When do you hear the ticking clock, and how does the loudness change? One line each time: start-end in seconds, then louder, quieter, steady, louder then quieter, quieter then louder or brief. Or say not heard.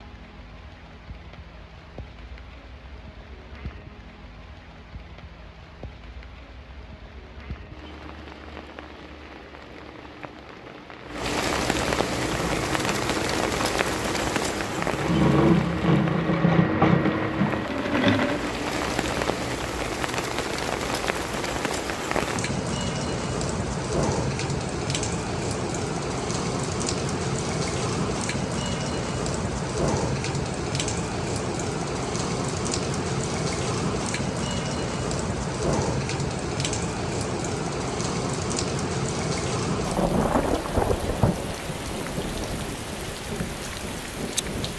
not heard.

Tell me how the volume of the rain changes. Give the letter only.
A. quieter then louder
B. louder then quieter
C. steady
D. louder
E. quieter
D.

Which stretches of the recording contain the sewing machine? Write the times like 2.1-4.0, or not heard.
12.1-18.7.